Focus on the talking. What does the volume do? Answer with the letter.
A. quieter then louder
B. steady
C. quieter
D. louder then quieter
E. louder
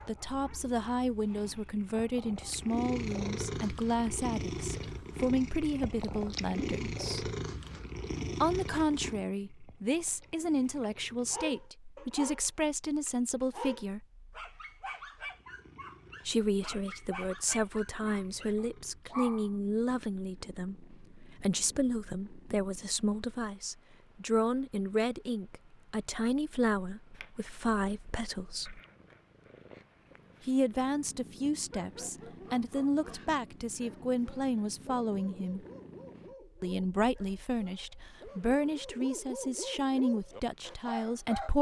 B.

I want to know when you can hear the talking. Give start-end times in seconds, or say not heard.
0.1-7.3, 8.4-14.1, 16.2-28.8, 30.4-35.6, 36.6-41.5.